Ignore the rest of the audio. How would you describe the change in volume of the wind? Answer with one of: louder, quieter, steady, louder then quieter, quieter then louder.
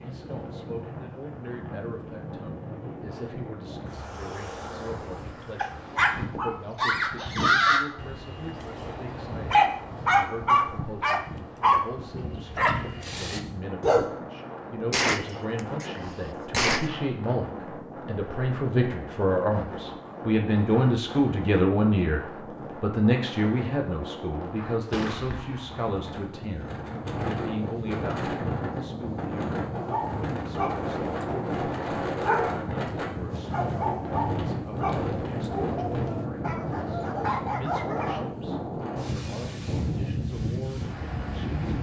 louder.